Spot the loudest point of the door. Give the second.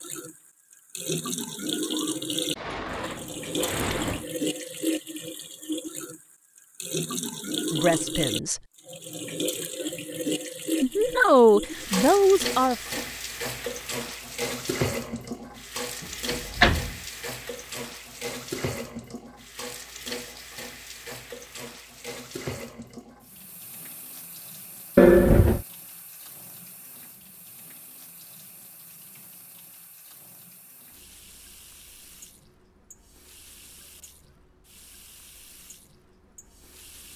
25 s.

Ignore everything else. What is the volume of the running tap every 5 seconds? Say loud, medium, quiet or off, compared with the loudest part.
loud, loud, loud, medium, medium, quiet, quiet, quiet.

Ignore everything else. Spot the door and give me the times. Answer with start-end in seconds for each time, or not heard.
2.5-4.2, 16.0-16.9, 24.9-25.6.